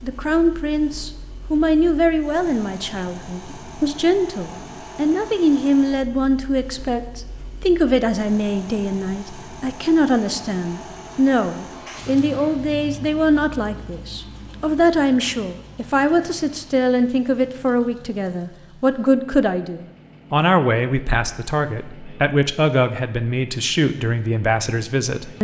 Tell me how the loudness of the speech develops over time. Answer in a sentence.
The volume of the speech stays about the same.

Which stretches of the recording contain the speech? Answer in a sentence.
You can hear the speech from 0.0 to 25.3 s.